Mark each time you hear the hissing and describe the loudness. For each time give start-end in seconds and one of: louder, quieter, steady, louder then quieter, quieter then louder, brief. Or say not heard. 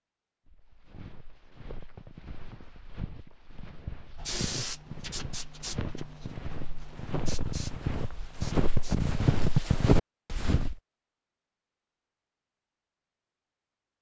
4.2-9.8 quieter.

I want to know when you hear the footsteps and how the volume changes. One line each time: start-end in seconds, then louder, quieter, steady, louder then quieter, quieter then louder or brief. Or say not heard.
0.5-10.8 louder.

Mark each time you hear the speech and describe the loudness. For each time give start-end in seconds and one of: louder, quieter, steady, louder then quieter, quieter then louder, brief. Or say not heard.
not heard.